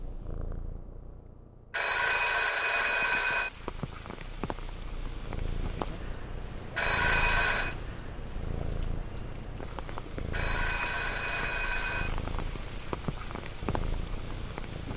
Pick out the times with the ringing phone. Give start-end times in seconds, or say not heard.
1.7-3.5, 6.8-7.8, 10.3-12.1.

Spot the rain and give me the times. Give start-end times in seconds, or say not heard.
2.5-14.9.